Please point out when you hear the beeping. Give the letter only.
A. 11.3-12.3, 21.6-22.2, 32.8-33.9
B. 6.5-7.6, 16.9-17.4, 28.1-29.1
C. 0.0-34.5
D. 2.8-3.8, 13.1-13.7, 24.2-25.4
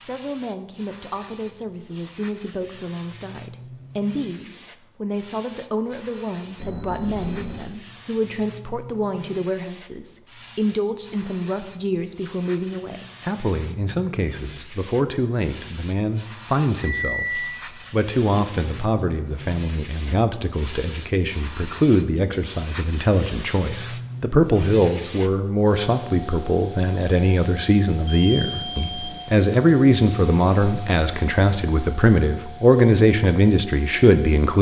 B.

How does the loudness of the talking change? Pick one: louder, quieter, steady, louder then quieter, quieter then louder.
louder.